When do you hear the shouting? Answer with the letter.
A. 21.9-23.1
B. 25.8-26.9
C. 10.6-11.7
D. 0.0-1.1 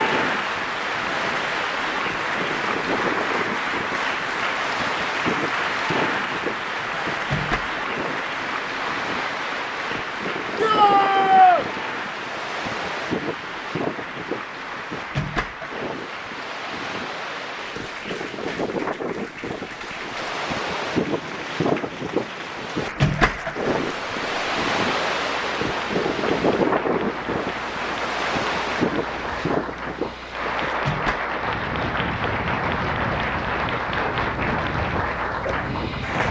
C.